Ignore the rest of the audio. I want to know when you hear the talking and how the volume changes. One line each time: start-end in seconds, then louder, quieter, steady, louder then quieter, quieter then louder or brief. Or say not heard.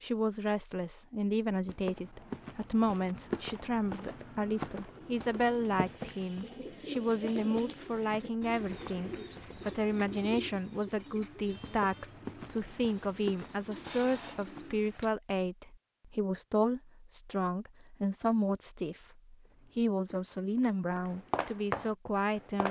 0.0-22.6 steady.